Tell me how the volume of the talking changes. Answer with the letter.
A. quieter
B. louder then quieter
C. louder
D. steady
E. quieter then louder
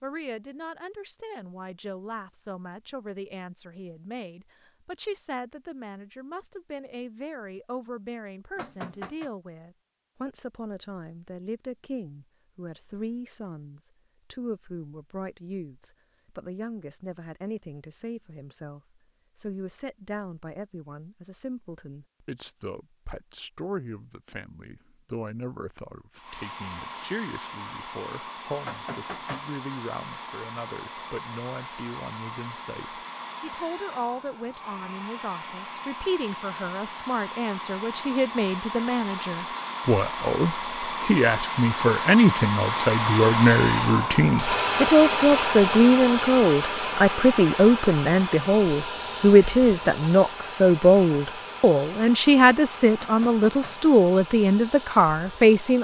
C.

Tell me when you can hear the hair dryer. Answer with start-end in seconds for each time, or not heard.
26.1-55.7.